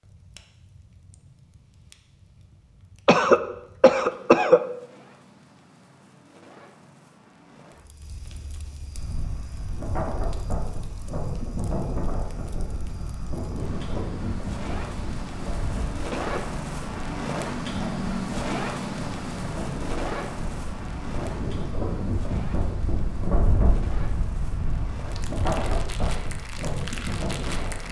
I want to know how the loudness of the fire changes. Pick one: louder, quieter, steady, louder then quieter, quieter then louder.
louder then quieter.